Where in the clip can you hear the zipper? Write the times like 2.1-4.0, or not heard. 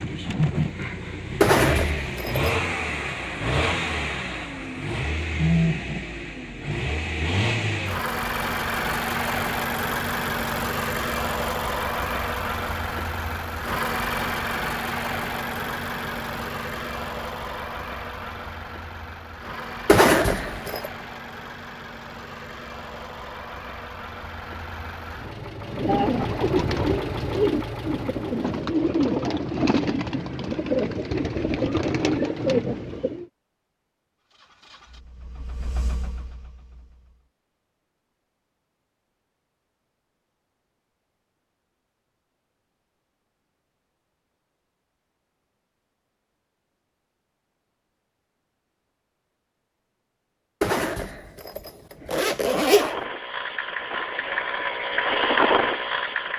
1.4-2.5, 19.9-20.9, 50.6-53.0.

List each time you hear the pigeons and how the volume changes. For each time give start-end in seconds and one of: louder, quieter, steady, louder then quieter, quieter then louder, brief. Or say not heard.
25.6-33.2 steady.